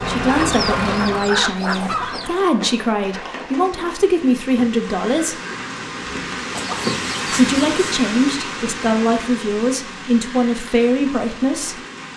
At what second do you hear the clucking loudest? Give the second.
1 s.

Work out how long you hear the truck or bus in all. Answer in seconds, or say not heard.
2 s.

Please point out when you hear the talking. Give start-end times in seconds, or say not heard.
0.0-5.3, 7.3-11.8.